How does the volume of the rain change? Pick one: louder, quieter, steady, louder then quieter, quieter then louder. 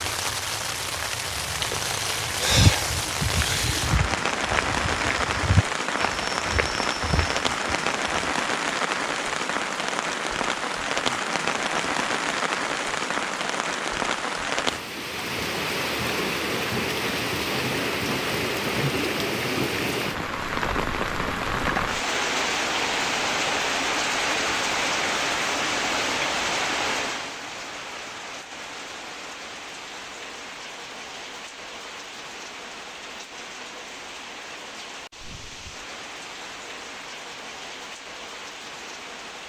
quieter.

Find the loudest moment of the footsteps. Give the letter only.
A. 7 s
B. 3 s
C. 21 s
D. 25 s
B.